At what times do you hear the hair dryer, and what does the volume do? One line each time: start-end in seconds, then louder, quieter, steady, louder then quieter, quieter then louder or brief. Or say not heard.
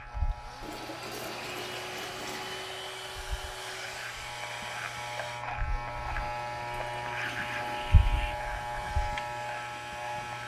0.0-10.4 quieter.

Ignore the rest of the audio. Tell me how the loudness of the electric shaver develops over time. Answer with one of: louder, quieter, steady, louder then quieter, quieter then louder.
louder.